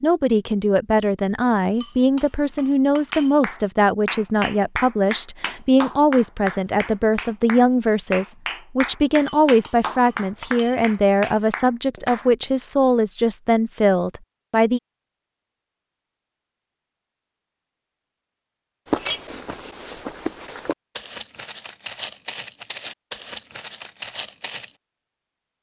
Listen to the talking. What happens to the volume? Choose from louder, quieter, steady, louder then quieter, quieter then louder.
steady.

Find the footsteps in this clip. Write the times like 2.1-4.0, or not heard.
18.9-24.8.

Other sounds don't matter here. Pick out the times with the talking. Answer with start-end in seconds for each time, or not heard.
0.0-14.8.